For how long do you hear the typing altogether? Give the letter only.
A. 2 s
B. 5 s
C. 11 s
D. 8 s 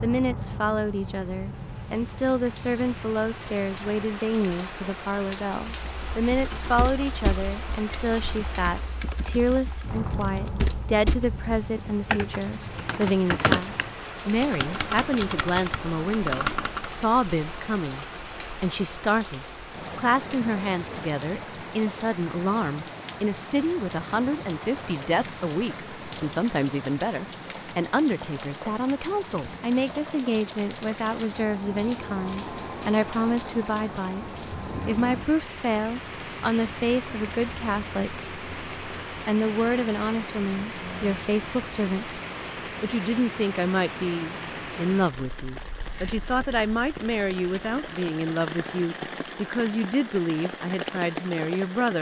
C.